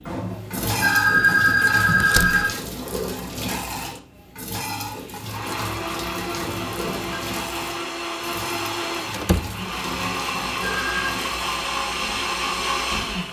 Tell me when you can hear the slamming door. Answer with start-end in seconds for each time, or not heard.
2.0-2.5, 9.1-9.6.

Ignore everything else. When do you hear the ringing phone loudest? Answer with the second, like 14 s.
1 s.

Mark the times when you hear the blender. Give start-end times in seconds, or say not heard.
5.2-13.2.